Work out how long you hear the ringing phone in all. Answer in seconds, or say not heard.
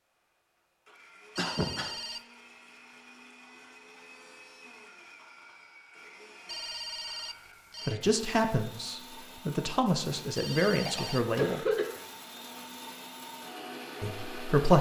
3 s.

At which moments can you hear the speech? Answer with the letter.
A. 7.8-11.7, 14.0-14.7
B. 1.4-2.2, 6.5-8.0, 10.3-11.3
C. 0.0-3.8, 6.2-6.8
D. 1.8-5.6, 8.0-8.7
A.